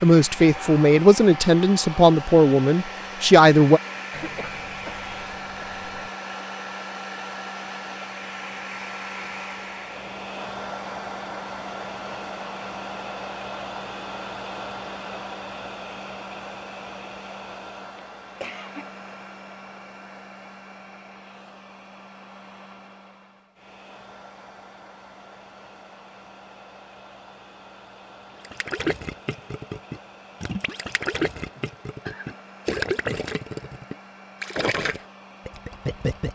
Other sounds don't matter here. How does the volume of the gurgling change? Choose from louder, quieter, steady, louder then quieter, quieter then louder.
steady.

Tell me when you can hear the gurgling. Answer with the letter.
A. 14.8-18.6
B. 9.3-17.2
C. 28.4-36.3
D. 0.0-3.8
C.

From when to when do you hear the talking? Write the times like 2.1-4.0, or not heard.
0.0-3.8.